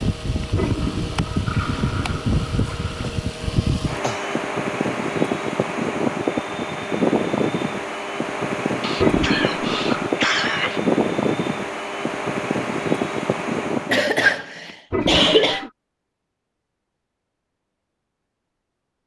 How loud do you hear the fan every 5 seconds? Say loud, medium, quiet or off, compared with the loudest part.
loud, loud, loud, off.